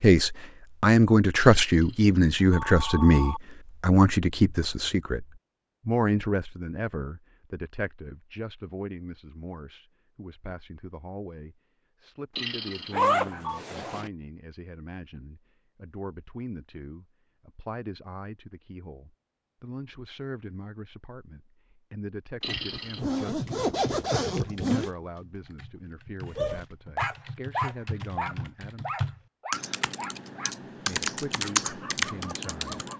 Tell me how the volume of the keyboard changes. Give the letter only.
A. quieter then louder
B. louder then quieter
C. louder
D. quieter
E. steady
C.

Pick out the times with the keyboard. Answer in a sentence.
The keyboard can be heard from 23.4 to 32.9 s.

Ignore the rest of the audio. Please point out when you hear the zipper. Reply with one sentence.
The zipper can be heard from 12.9 to 14.1 s and from 22.4 to 24.9 s.